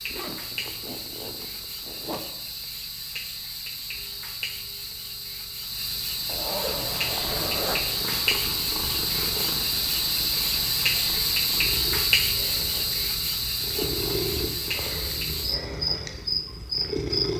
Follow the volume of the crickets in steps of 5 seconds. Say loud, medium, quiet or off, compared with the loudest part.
medium, loud, loud, loud.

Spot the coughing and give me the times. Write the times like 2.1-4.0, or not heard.
not heard.